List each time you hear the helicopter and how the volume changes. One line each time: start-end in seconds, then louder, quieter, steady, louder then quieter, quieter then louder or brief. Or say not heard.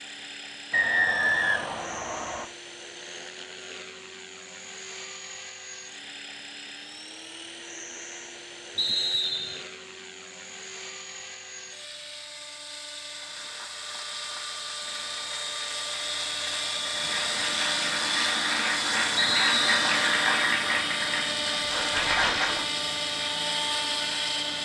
0.0-24.5 louder.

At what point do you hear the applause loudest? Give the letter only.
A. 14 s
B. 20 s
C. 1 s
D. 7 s
B.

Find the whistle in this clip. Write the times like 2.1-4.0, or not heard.
0.7-2.5, 8.8-9.7, 19.1-19.9.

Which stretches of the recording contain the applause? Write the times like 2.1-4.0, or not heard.
13.1-22.6.